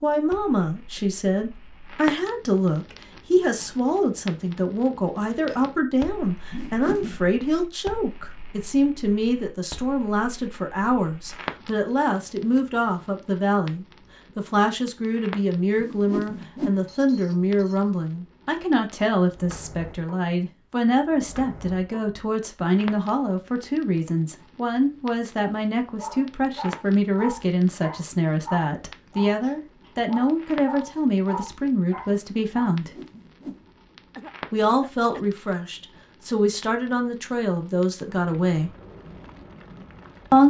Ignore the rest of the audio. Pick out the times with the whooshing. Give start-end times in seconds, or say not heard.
6.5-7.2, 15.8-16.8, 32.8-33.7.